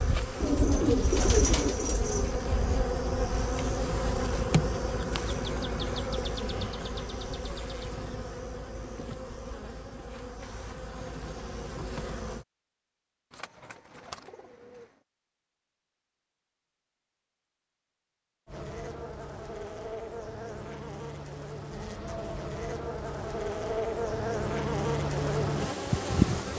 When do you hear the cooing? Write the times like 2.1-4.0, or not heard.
0.4-2.4, 13.3-14.8.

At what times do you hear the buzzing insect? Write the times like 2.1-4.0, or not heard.
0.0-12.4, 18.4-26.5.